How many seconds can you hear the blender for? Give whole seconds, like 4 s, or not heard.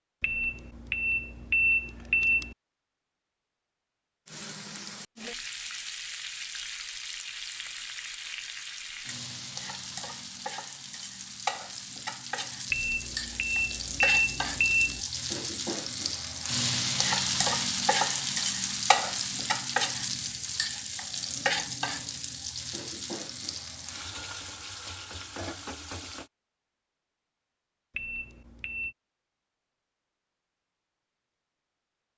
not heard.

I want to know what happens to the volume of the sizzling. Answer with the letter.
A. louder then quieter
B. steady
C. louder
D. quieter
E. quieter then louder
A.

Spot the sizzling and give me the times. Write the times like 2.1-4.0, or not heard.
4.2-26.3.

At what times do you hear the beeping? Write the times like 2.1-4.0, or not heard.
0.2-2.5, 12.7-15.0, 27.9-28.9.